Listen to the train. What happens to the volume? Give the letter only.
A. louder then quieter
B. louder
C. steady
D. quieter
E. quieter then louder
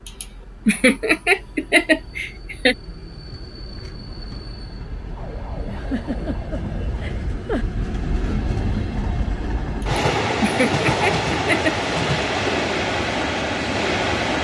B.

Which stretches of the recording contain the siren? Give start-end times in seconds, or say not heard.
5.1-7.3.